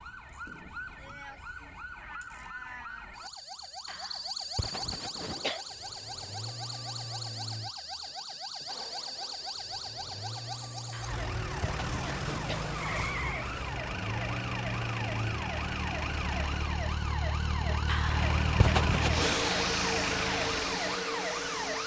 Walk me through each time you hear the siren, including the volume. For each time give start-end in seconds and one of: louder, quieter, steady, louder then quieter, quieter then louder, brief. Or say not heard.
0.0-21.8 louder.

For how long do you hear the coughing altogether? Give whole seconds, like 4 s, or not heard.
5 s.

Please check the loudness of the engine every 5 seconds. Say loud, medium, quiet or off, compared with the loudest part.
off, quiet, medium, loud, loud.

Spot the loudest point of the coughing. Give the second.
19 s.